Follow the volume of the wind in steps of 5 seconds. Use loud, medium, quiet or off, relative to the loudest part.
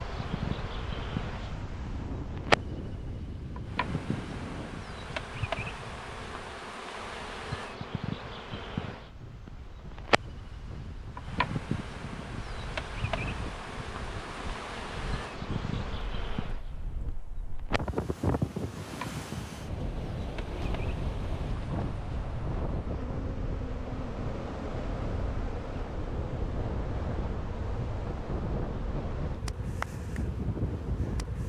medium, quiet, medium, loud, loud, loud, loud.